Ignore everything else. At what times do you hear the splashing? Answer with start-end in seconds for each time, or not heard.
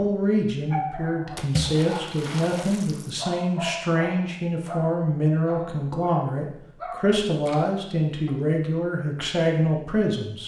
1.4-3.1, 7.4-8.6.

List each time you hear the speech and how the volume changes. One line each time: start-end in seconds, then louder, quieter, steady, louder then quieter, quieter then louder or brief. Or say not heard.
0.0-10.4 steady.